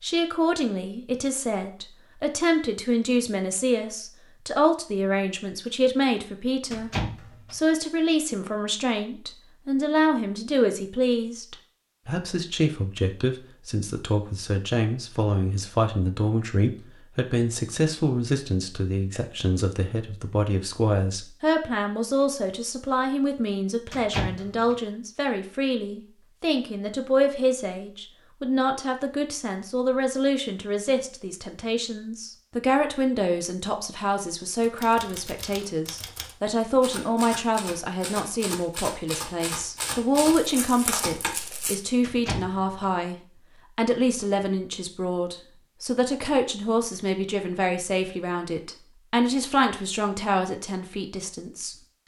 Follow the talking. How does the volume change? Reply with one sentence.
The loudness of the talking stays about the same.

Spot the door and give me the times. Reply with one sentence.
The door can be heard from 6.7 to 7.5 s, from 23.9 to 24.8 s and from 42.0 to 42.9 s.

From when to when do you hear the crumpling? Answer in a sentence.
You can hear the crumpling from 40.4 to 41.8 s.